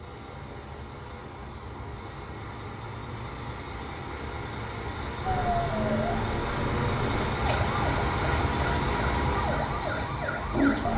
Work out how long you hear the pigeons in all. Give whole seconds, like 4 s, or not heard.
not heard.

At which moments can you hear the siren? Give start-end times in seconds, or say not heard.
5.2-10.9.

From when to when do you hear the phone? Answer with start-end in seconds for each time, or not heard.
not heard.